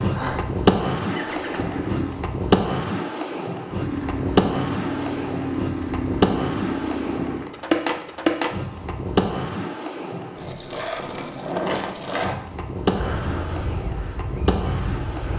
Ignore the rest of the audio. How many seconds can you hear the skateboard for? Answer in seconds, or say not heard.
15 s.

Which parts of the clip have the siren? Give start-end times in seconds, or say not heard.
not heard.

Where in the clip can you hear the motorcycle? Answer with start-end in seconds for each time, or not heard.
0.0-2.1, 3.8-7.5, 12.9-15.3.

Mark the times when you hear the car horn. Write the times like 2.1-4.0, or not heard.
not heard.